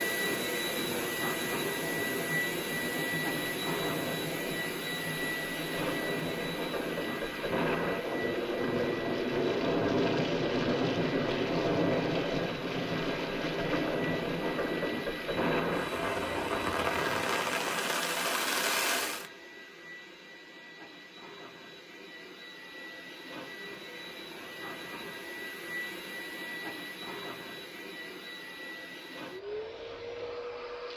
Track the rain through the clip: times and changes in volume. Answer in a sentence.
You can hear the rain from 0.0 to 19.3 s, getting louder.